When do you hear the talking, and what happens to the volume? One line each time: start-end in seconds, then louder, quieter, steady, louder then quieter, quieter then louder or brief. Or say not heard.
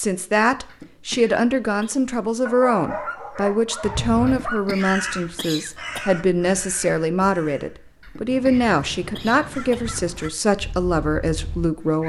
0.0-12.0 steady.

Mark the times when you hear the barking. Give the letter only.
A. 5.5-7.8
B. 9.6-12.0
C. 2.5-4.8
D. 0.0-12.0
C.